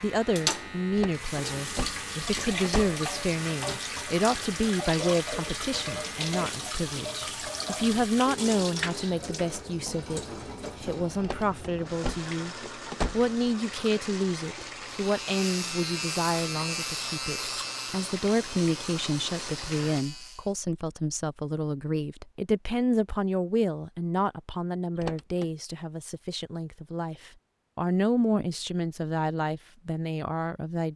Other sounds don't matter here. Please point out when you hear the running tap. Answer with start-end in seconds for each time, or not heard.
0.0-20.1.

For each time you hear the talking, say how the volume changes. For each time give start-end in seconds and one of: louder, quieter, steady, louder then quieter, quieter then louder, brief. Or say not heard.
0.0-30.9 steady.